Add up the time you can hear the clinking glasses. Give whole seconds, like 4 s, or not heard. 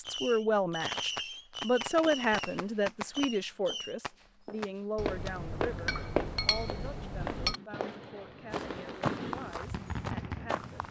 3 s.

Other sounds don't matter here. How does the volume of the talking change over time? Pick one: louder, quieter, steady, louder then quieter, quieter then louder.
quieter.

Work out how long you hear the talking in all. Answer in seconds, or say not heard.
11 s.